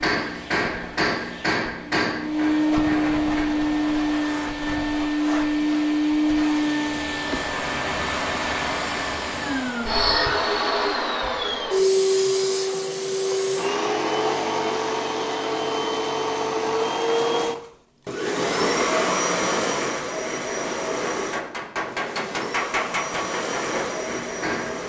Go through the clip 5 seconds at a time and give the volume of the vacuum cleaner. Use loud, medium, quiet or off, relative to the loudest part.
loud, loud, loud, loud, medium.